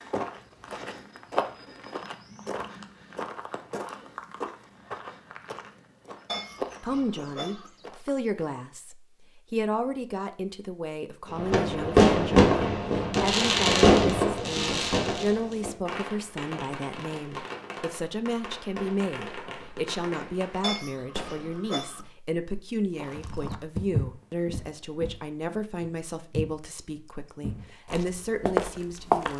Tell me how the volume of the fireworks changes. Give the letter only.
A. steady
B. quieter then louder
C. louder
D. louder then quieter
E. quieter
E.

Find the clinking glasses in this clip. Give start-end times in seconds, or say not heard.
6.2-7.7, 20.6-22.1.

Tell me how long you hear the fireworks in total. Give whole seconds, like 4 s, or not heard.
11 s.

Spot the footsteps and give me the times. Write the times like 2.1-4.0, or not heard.
0.0-8.1, 22.9-29.3.